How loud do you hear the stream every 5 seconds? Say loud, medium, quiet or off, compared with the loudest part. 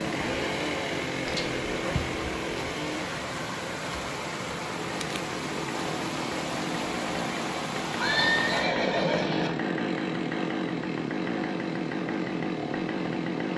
loud, loud, quiet.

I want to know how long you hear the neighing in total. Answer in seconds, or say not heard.
2 s.